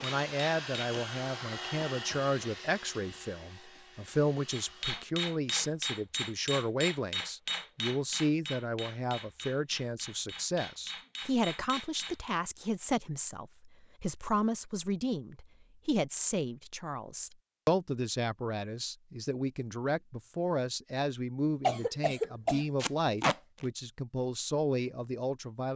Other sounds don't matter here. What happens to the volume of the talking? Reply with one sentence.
The volume of the talking stays about the same.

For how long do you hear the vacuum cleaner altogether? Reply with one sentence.
You can hear the vacuum cleaner for 5 seconds altogether.